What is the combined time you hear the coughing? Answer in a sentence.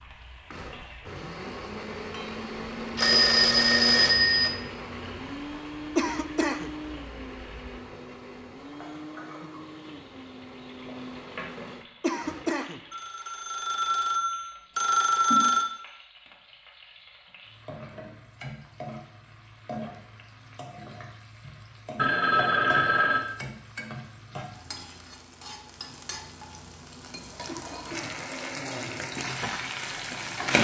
You can hear the coughing for 2 seconds altogether.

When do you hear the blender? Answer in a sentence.
You can hear the blender from 0.0 to 12.6 s.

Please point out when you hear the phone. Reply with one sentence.
The phone can be heard from 3.0 to 4.5 s, from 12.9 to 15.7 s and from 21.9 to 23.3 s.